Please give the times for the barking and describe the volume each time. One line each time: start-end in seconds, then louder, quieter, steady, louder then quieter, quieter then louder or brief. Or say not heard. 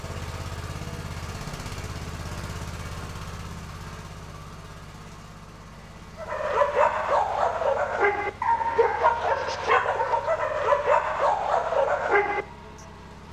6.2-12.4 steady.